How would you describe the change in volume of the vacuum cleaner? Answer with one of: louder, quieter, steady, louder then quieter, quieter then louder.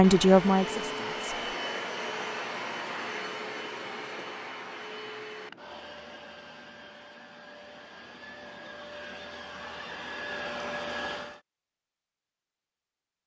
quieter then louder.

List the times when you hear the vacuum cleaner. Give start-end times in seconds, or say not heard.
0.0-11.4.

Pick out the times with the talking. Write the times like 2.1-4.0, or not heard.
0.0-1.3.